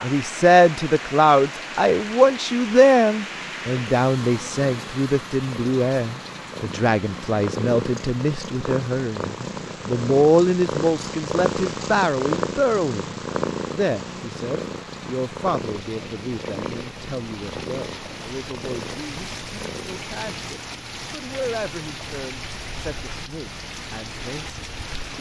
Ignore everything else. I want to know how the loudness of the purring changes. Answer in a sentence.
The volume of the purring goes up, then down.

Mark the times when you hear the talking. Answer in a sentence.
You can hear the talking from 0.0 to 25.1 s.